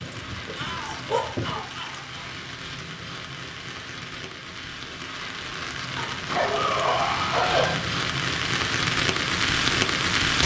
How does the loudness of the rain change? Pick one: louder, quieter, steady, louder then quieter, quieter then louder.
louder.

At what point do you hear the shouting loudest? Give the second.
7 s.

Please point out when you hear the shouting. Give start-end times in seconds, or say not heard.
0.6-2.4, 6.4-7.8.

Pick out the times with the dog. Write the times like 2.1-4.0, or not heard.
0.0-1.6, 6.0-7.9.